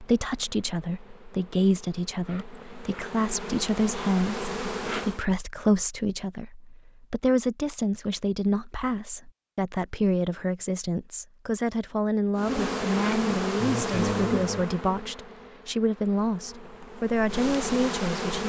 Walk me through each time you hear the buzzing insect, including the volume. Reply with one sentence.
The buzzing insect can be heard from 0.0 to 5.2 s, getting louder; and from 12.3 to 18.4 s, getting quieter then louder.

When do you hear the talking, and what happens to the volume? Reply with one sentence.
You can hear the talking from 0.0 to 18.4 s, at a steady volume.